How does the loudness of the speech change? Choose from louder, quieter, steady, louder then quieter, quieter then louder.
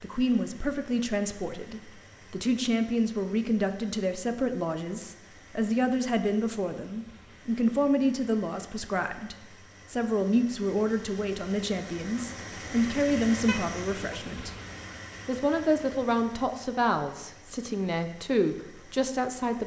steady.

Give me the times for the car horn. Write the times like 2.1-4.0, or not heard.
13.4-14.2.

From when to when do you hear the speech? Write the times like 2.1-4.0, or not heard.
0.0-14.6, 15.2-19.6.